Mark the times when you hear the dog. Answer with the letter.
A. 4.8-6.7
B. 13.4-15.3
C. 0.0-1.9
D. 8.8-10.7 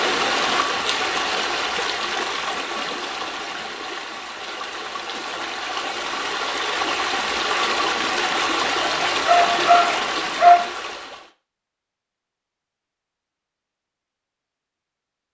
D.